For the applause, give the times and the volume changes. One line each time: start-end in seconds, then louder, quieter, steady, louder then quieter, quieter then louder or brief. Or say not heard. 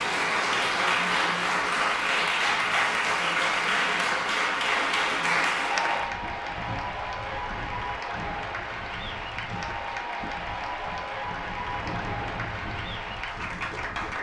0.0-14.1 quieter.